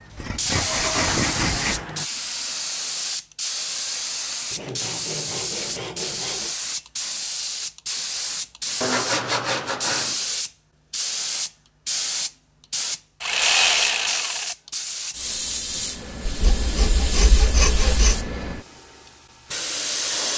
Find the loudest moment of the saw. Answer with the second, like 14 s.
14 s.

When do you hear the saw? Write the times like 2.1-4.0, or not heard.
0.1-1.9, 4.5-6.5, 8.8-10.2, 13.2-14.6, 16.2-18.3.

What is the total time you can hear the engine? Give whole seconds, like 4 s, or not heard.
2 s.